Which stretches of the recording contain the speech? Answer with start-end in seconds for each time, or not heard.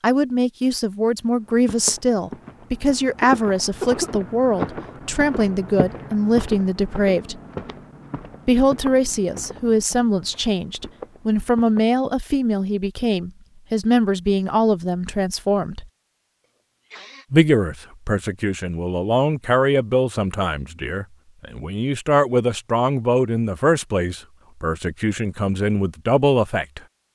0.0-7.4, 8.4-15.8, 17.3-26.8.